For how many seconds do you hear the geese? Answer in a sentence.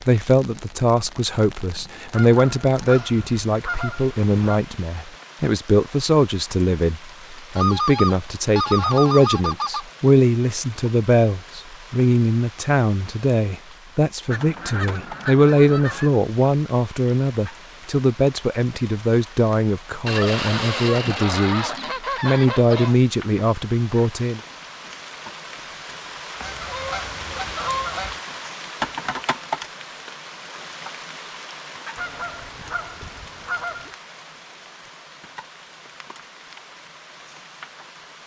The geese can be heard for 13 seconds in total.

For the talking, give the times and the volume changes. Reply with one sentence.
You can hear the talking from 0.1 to 24.4 s, at a steady volume.